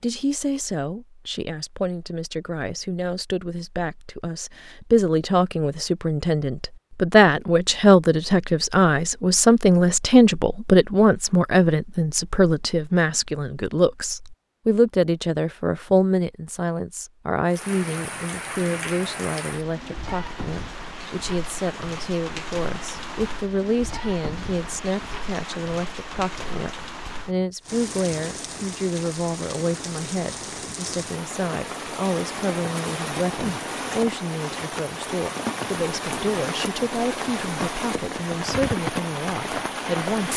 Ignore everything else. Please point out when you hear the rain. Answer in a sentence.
The rain can be heard from 17.4 to 40.3 s.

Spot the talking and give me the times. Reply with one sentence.
The talking can be heard from 0.0 to 40.3 s.